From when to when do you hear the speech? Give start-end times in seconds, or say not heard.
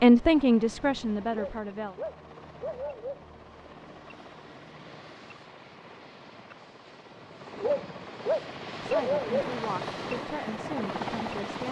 0.0-1.9, 8.8-11.6.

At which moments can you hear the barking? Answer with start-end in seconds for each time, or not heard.
1.2-3.2, 7.5-9.5.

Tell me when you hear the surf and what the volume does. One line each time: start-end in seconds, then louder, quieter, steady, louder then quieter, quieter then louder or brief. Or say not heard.
not heard.